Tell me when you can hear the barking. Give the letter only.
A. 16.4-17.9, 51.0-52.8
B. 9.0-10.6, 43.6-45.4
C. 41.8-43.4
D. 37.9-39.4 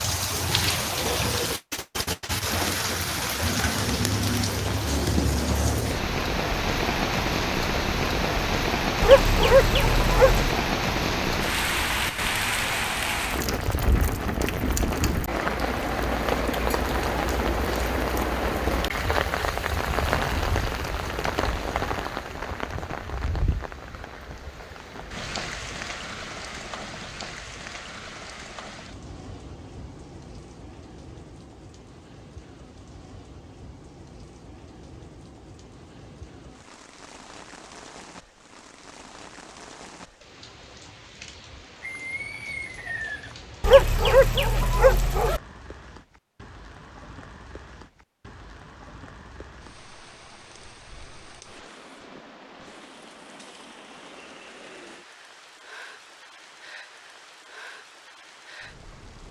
B.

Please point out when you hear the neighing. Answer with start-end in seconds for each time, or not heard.
41.8-43.4.